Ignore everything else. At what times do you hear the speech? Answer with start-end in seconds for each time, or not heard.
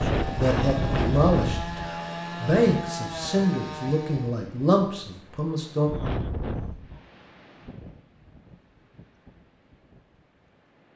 0.3-5.9.